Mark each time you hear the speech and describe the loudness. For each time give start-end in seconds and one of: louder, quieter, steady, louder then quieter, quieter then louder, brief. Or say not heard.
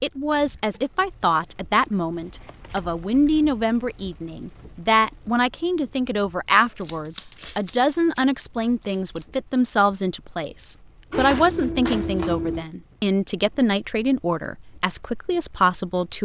0.0-16.2 steady.